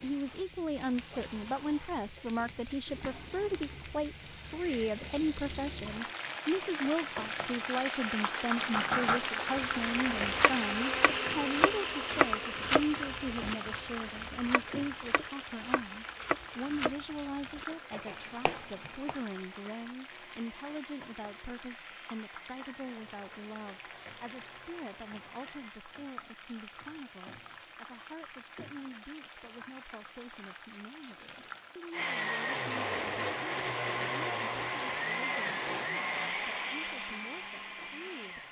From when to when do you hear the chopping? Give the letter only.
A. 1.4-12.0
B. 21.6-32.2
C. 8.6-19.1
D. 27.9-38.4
C.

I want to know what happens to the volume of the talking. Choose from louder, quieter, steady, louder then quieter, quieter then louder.
quieter.